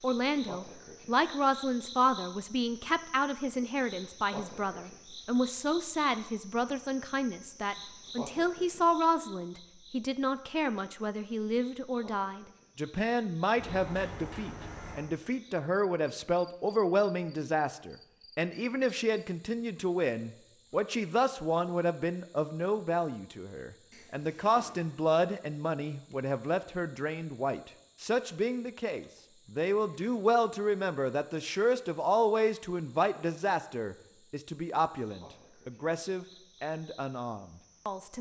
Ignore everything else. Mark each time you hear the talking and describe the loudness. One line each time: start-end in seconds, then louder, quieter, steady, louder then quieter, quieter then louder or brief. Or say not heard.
0.0-38.1 steady.